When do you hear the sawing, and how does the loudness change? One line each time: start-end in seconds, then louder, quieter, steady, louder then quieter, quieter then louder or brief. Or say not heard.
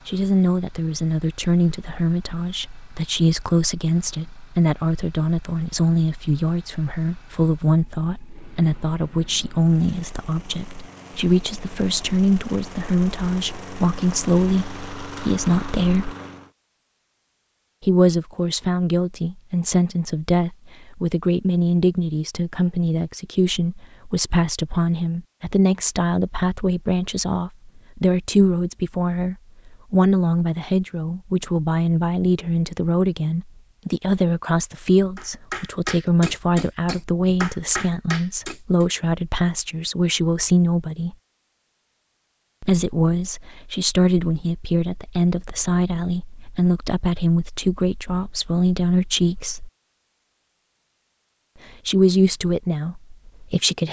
not heard.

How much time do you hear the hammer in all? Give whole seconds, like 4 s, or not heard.
4 s.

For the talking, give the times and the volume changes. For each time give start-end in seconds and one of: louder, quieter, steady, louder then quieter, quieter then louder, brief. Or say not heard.
0.1-16.1 steady
17.8-41.1 steady
42.6-49.7 steady
51.9-53.8 brief.